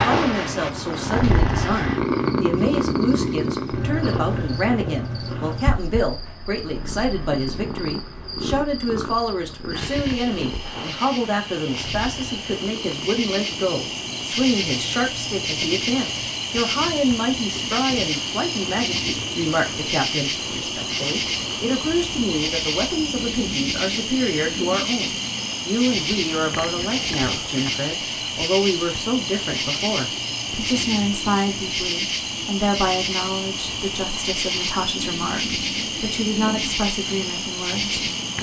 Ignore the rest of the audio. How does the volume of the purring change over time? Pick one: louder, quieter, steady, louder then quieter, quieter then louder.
quieter.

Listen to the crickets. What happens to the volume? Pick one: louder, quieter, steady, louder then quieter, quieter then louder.
louder.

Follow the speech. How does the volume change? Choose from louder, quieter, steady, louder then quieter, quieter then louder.
steady.